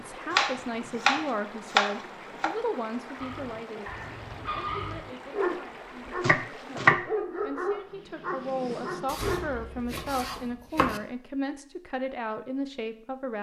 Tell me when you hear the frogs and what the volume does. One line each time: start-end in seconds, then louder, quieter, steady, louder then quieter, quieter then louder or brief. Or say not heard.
not heard.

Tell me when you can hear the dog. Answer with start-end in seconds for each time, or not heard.
3.1-9.6.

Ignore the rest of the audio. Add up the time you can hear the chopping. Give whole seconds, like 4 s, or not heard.
5 s.